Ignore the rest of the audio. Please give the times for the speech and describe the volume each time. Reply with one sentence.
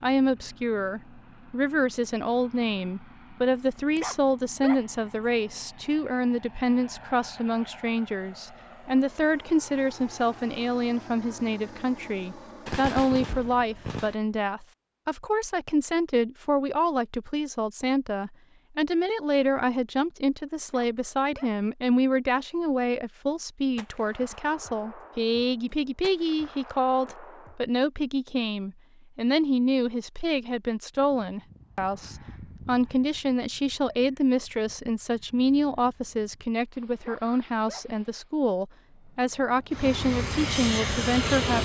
The speech can be heard from 0.0 to 41.6 s, at a steady volume.